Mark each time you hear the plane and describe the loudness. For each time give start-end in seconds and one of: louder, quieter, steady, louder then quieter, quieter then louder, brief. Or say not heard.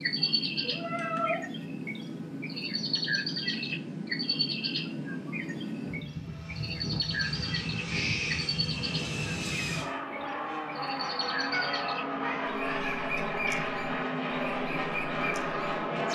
0.0-16.1 louder.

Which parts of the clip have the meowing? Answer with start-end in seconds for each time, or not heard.
0.2-1.4, 7.8-8.6, 11.5-13.7.